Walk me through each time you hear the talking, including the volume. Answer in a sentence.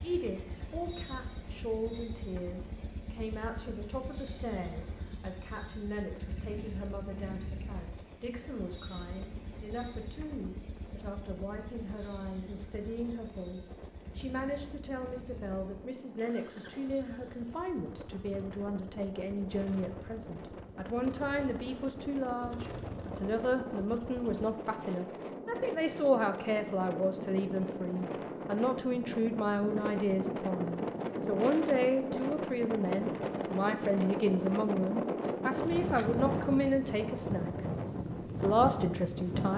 You can hear the talking from 0.0 to 37.5 s, getting louder; and briefly from 38.0 to 39.5 s.